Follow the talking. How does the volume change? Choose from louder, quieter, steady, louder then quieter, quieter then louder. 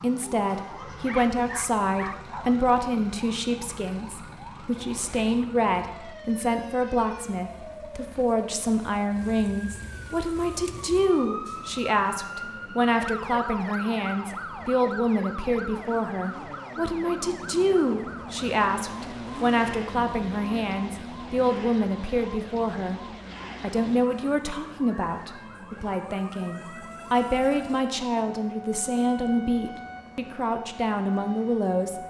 steady.